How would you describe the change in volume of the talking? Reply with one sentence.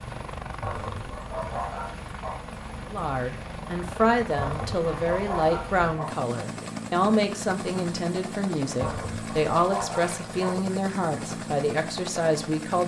The volume of the talking stays about the same.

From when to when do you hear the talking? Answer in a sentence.
You can hear the talking from 2.9 to 12.8 s.